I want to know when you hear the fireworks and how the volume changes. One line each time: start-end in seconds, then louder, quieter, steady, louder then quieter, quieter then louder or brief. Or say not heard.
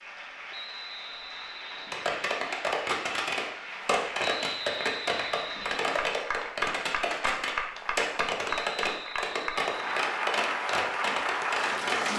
1.9-12.1 steady.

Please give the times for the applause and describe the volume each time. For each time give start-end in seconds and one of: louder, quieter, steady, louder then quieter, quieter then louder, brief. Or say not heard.
0.0-12.1 louder.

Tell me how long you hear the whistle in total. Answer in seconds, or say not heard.
5 s.